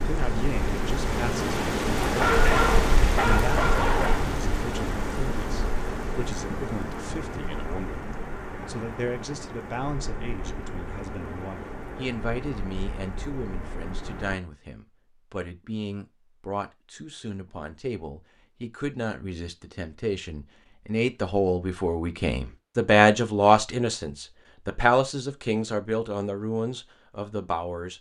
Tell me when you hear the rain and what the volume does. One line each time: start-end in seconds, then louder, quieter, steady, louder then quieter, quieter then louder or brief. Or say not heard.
0.0-14.4 quieter.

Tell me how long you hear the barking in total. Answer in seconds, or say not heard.
2 s.